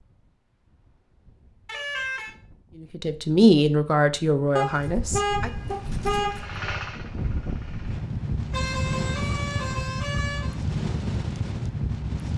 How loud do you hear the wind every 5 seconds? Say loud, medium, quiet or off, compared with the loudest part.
quiet, loud, loud.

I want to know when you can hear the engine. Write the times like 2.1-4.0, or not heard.
5.7-8.1.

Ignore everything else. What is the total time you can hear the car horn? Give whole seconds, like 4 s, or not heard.
5 s.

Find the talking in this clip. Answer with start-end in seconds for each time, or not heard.
2.8-5.5.